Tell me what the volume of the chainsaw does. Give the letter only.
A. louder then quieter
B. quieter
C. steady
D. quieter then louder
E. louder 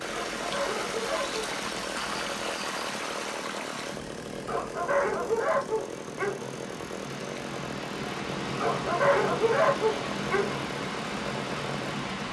C.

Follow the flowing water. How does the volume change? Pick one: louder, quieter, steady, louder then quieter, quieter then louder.
quieter then louder.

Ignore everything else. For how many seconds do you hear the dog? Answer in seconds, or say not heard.
5 s.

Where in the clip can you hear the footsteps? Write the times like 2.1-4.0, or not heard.
not heard.